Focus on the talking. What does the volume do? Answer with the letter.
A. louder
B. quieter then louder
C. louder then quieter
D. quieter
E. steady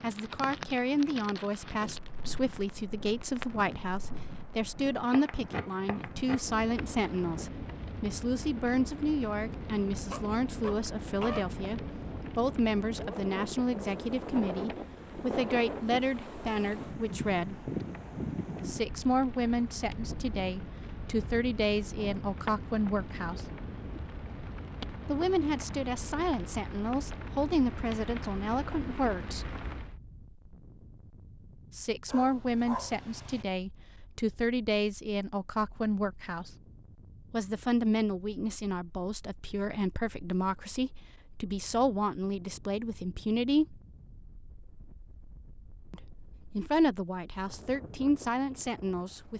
E.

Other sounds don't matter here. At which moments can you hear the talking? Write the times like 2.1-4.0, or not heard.
0.0-17.6, 18.6-23.4, 25.1-29.6, 31.7-36.5, 37.3-43.8, 45.9-49.3.